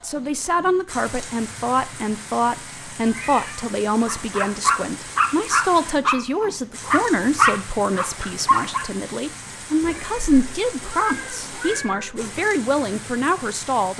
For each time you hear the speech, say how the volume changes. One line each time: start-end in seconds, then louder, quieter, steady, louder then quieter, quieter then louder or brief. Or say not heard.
0.0-13.9 steady.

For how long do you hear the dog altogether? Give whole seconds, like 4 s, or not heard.
5 s.